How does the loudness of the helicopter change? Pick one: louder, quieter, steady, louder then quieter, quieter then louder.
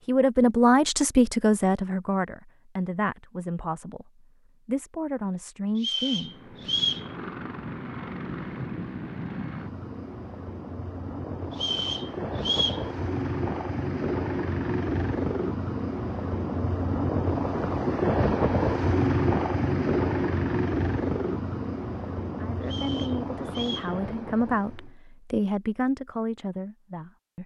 louder then quieter.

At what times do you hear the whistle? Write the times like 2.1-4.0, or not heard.
5.8-7.0, 11.5-12.8, 22.6-23.9.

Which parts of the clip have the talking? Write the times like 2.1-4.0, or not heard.
0.1-6.5, 22.4-27.4.